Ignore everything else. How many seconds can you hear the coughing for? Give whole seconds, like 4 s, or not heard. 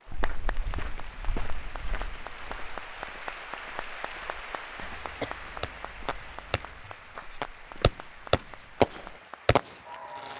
2 s.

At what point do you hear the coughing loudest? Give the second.
5 s.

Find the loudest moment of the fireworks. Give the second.
9 s.